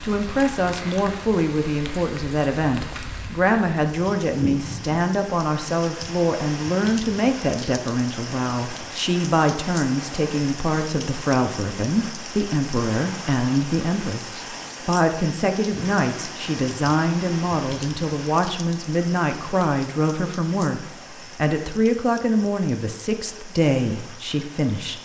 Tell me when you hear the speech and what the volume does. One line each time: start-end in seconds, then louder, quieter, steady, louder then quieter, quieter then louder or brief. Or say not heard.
0.0-25.0 steady.